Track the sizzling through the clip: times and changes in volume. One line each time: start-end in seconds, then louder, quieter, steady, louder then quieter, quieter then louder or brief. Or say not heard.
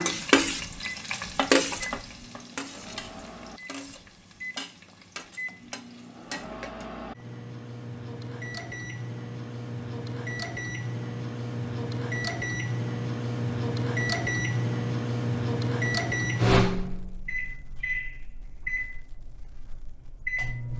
0.0-6.8 quieter.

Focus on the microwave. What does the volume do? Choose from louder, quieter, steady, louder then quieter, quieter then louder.
louder then quieter.